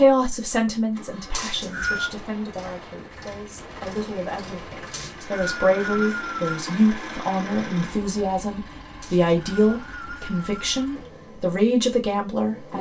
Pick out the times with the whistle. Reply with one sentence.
The whistle can be heard from 1.3 to 2.1 s, from 4.9 to 6.6 s and from 9.0 to 10.8 s.